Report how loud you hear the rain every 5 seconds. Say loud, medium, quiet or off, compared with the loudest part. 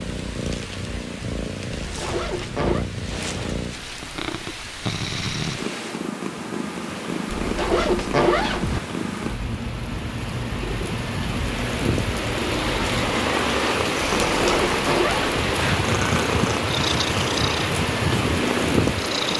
quiet, quiet, loud, loud.